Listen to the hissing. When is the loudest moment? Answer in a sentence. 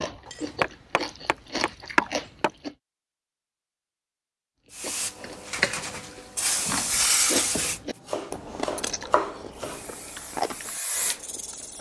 The loudest moment of the hissing is at 7 seconds.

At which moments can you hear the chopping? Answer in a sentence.
The chopping can be heard from 0.2 to 2.5 s and from 7.7 to 9.8 s.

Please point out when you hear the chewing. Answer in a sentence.
You can hear the chewing from 0.0 to 2.8 s and from 4.7 to 11.7 s.